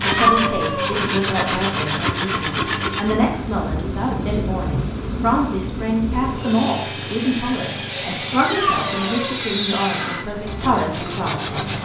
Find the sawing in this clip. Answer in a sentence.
The sawing can be heard from 0.0 to 3.1 s and from 6.3 to 11.7 s.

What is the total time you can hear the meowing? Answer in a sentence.
The meowing can be heard for 2 seconds in total.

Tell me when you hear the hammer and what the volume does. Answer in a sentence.
The hammer can't be heard in this clip.